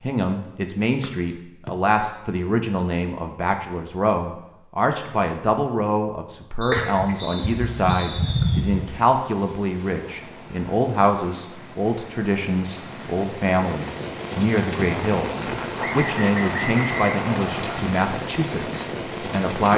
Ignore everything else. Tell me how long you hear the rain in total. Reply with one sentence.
You can hear the rain for 13 seconds altogether.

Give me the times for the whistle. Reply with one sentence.
You can hear the whistle from 1.0 to 1.7 s, from 6.6 to 8.6 s and from 15.8 to 17.8 s.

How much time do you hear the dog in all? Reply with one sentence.
The dog can be heard for 2 seconds in total.